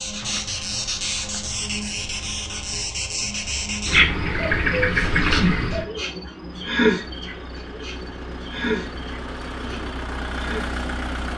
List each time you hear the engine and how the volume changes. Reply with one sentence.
The engine can be heard from 6.3 to 11.3 s, getting louder.